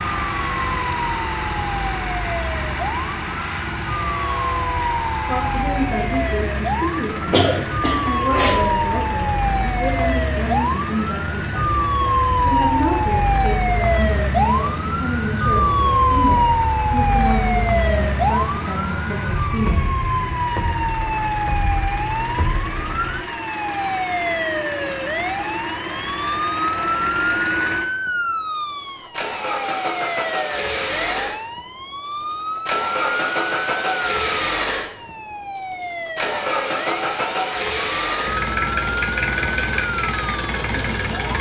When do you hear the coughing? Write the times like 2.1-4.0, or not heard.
7.3-8.7.